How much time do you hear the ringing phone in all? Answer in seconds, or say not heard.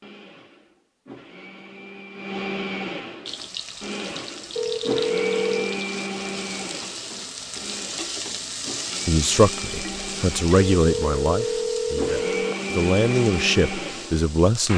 3 s.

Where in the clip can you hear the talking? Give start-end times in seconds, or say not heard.
9.1-14.7.